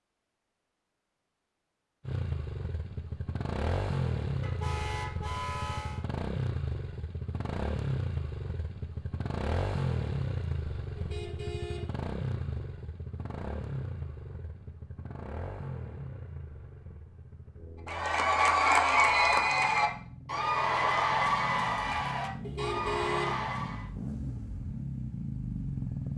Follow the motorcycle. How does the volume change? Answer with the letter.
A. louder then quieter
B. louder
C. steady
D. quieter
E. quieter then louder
E.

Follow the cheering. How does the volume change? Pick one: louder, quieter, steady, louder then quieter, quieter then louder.
quieter.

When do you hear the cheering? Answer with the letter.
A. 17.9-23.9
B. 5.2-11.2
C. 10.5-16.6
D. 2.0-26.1
A.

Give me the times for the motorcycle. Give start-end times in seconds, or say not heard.
2.0-26.1.